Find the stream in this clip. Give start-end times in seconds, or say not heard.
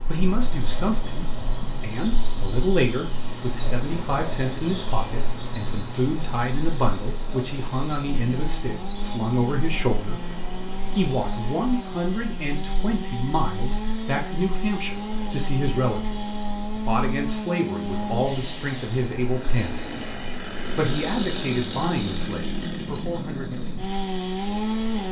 not heard.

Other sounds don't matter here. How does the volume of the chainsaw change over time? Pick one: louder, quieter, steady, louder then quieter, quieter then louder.
louder.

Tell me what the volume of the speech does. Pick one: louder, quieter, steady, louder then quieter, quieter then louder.
steady.